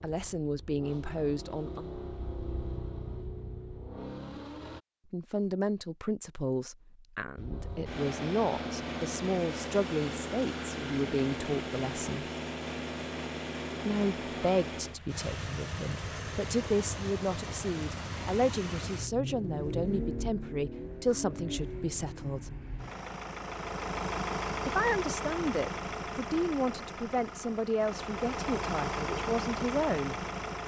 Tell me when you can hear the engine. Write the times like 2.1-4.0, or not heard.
0.1-4.8, 7.3-30.6.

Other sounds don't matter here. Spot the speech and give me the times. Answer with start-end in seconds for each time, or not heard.
0.0-1.9, 5.1-12.2, 13.8-22.5, 24.6-30.2.